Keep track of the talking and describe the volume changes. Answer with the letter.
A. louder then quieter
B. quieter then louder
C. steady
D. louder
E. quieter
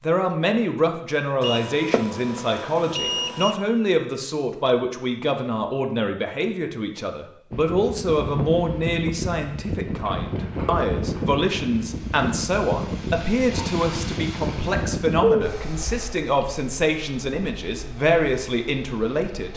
C.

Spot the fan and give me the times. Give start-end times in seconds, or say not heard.
7.5-19.5.